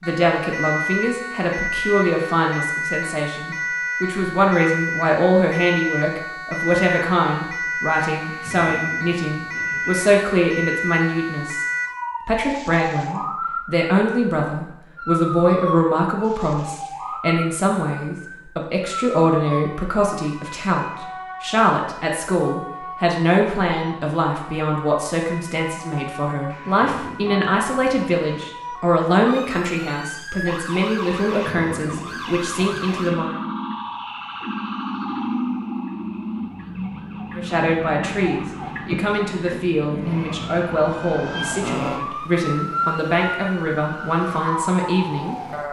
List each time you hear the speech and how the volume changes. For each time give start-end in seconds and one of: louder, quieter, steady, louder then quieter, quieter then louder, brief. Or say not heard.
0.0-11.7 steady
12.2-33.4 steady
37.4-45.4 steady.